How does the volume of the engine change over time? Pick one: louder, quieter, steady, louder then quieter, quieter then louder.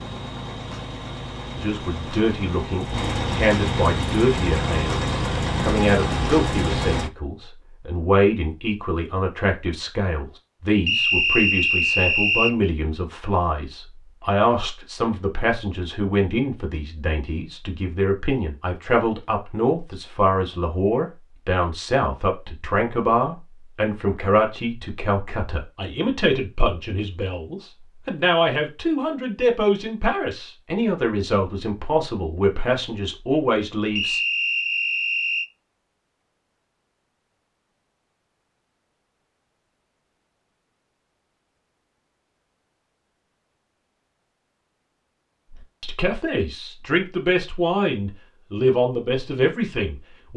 louder.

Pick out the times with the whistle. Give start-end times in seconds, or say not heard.
10.8-12.6, 34.0-35.5.